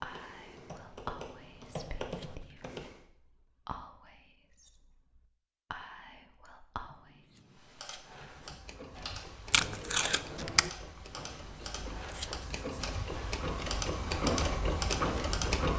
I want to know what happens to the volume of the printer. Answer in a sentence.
The volume of the printer goes up.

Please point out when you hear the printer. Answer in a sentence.
You can hear the printer from 8.3 to 15.7 s.